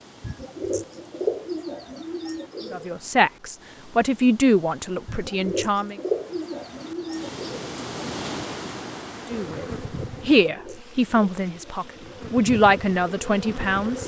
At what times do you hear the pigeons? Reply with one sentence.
You can hear the pigeons from 0.2 to 2.9 s, from 5.0 to 7.8 s and from 10.4 to 12.2 s.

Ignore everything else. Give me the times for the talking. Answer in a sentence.
The talking can be heard from 2.7 to 6.0 s and from 9.3 to 14.0 s.